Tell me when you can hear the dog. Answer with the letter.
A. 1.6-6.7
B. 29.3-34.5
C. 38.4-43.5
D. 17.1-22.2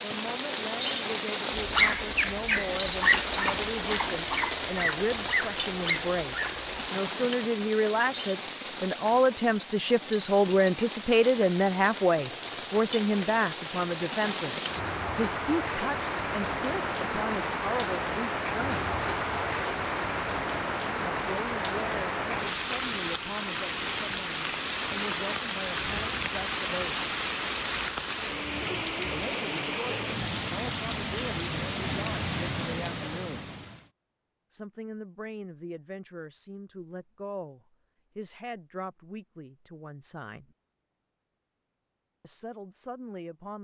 A.